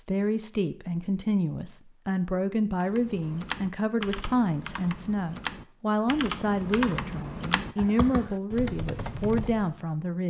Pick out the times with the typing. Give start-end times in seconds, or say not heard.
2.8-9.8.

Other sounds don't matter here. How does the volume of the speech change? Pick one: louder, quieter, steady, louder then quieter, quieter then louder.
steady.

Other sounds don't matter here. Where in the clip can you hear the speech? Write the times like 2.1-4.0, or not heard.
0.0-10.2.